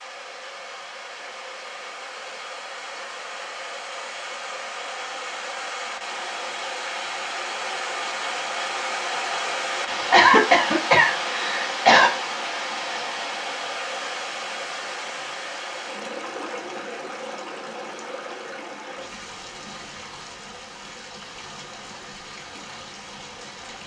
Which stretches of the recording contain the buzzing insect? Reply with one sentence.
The buzzing insect can't be heard in this clip.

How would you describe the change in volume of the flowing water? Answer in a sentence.
The volume of the flowing water goes up, then down.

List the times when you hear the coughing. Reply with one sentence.
The coughing can be heard from 10.1 to 12.1 s.